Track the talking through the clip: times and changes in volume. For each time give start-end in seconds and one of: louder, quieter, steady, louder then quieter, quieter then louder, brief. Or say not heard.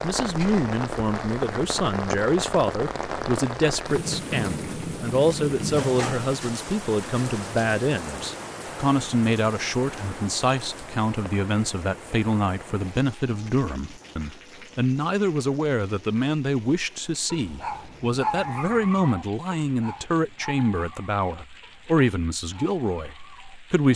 0.0-23.9 steady.